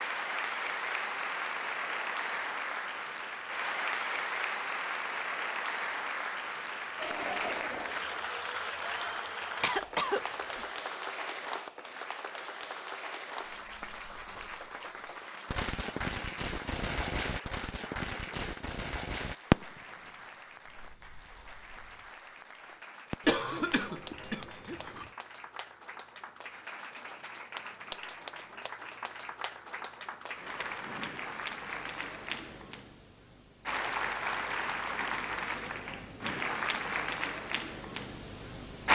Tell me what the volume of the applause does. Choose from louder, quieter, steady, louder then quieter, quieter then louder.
quieter then louder.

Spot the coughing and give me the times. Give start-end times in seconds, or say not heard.
9.6-10.7, 23.2-25.1.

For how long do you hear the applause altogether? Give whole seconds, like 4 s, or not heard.
39 s.